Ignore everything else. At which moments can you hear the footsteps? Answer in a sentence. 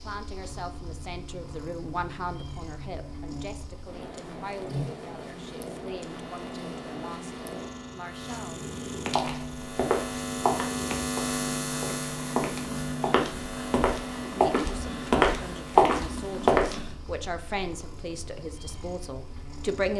You can hear the footsteps from 9.1 to 16.8 s.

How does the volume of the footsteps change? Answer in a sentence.
The volume of the footsteps goes down, then up.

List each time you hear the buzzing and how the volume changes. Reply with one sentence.
The buzzing can be heard from 0.0 to 19.9 s, getting louder then quieter.